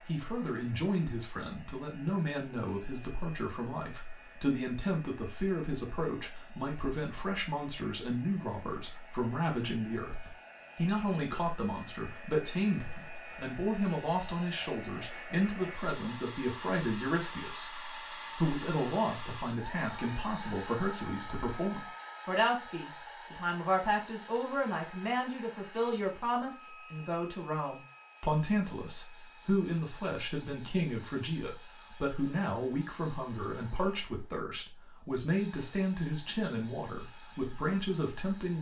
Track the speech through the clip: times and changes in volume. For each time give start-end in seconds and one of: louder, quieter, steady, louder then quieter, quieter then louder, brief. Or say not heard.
0.0-38.5 steady.